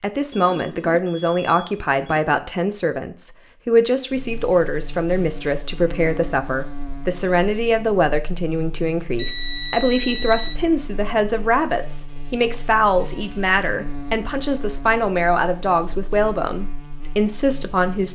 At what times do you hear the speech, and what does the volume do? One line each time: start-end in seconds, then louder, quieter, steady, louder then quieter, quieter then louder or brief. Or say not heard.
0.0-18.1 steady.